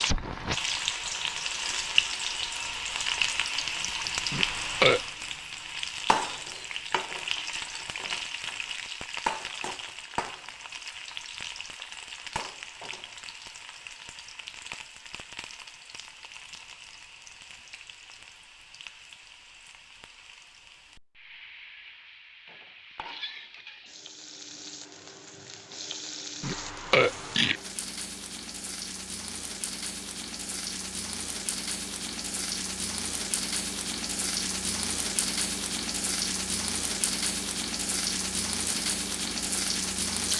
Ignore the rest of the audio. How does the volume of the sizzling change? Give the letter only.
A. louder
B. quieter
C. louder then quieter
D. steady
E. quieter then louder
E.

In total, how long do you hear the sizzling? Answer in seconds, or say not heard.
40 s.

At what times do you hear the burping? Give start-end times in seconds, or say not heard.
4.3-5.0, 26.4-27.6.